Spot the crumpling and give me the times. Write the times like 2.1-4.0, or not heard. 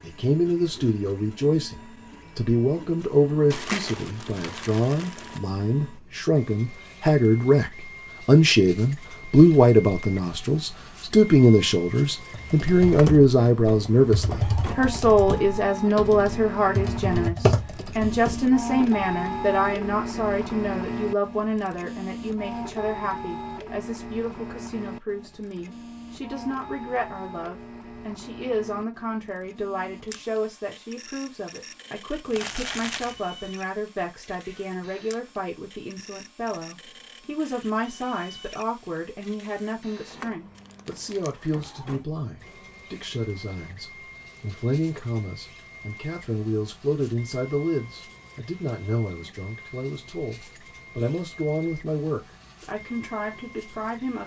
3.5-5.4, 32.2-33.2, 40.5-41.6.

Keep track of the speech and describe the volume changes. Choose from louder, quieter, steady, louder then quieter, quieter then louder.
quieter.